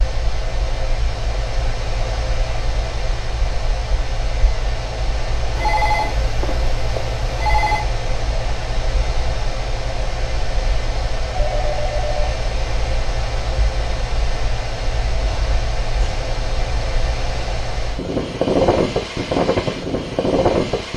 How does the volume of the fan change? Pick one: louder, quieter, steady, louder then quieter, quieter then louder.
louder.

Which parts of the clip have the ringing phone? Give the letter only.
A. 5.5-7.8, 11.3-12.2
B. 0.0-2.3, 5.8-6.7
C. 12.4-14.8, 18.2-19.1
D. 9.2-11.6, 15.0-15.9
A.